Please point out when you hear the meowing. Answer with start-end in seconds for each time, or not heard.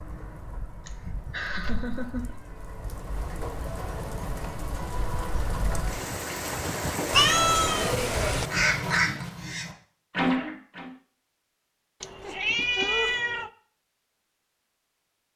1.6-2.7, 7.1-8.5, 12.0-13.5.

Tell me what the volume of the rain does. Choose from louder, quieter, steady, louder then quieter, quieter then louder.
louder.